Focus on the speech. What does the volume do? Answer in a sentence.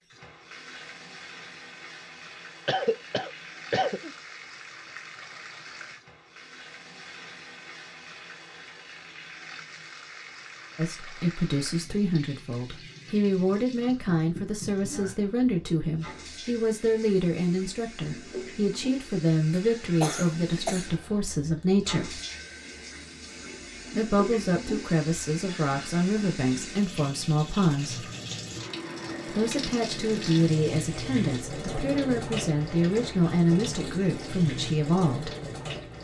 The loudness of the speech stays about the same.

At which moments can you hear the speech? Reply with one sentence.
The speech can be heard from 10.8 to 22.2 s, from 23.9 to 28.1 s and from 29.3 to 35.3 s.